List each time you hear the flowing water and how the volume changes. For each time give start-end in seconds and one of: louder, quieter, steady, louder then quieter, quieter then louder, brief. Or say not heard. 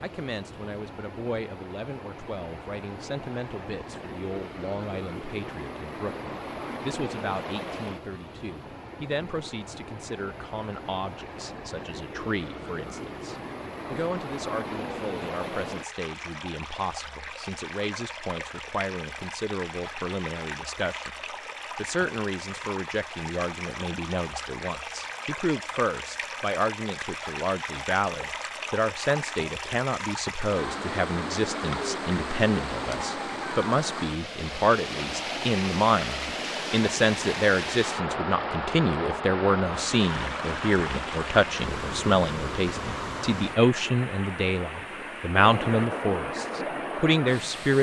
0.0-47.7 louder.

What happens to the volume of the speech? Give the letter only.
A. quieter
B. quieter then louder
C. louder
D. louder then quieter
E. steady
C.